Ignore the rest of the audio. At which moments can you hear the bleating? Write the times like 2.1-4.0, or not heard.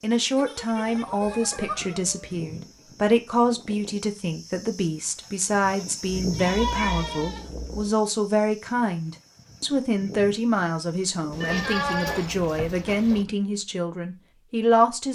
0.3-1.9, 5.7-7.5, 11.3-13.2.